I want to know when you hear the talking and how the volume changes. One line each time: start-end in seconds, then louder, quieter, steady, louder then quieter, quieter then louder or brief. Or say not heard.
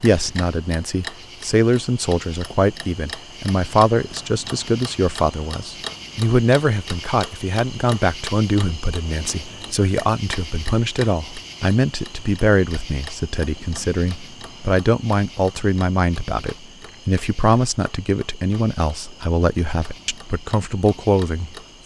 0.0-21.8 steady.